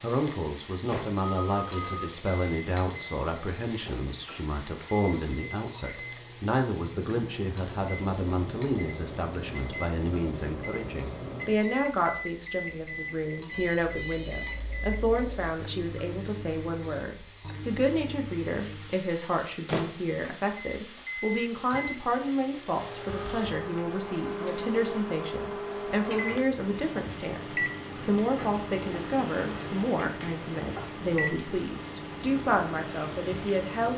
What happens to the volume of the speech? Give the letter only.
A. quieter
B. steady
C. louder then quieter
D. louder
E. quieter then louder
B.